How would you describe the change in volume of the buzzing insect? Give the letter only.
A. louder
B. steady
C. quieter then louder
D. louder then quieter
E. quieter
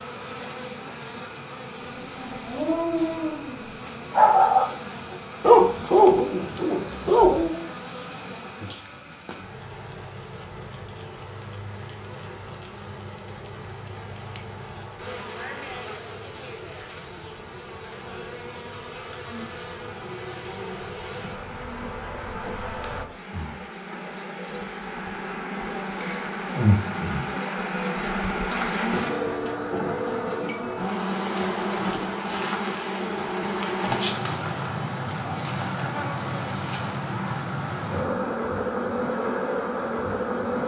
A.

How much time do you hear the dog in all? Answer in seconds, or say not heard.
5 s.